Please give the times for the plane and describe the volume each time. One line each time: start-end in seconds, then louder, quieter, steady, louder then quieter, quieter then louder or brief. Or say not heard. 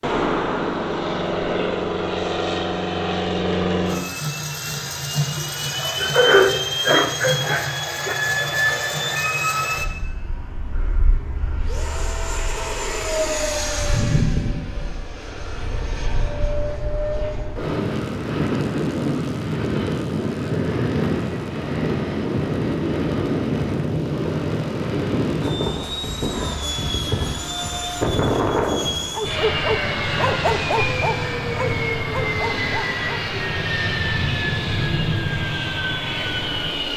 0.0-36.9 steady.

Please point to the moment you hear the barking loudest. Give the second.
6 s.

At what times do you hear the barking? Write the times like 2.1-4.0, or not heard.
5.8-8.9, 29.1-33.2.